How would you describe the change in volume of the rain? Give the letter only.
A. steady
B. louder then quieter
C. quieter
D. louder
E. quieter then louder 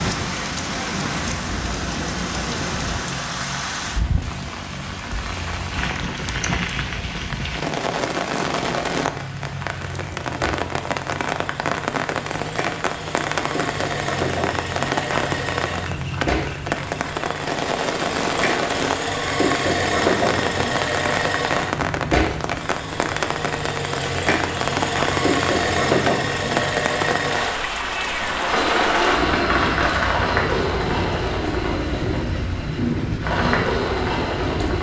A.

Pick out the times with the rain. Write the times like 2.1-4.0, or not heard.
0.0-34.7.